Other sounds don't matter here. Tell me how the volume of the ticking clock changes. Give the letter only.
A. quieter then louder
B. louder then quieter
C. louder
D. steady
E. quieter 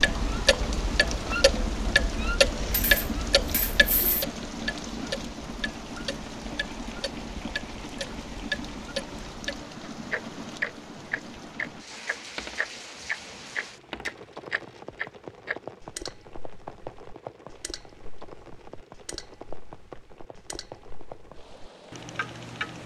E.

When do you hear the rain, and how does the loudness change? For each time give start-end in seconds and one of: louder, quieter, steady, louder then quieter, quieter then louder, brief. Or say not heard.
0.0-22.8 quieter.